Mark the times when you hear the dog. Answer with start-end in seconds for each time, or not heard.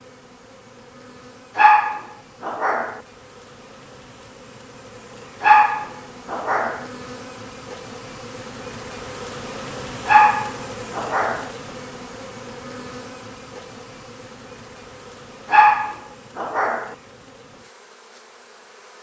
1.6-3.0, 5.4-6.8, 10.1-11.5, 15.5-16.9.